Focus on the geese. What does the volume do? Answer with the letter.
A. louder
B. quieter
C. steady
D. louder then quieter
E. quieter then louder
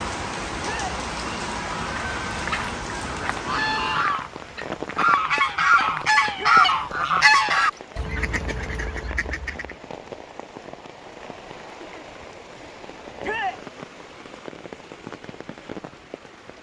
D.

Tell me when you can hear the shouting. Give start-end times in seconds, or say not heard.
0.6-1.0, 6.3-6.8, 13.2-13.7.